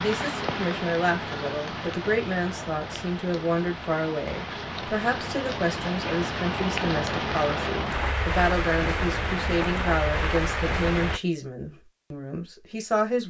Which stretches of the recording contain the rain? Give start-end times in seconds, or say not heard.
0.0-11.2.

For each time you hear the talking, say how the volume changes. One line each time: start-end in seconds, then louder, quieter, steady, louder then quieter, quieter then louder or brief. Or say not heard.
0.0-13.2 steady.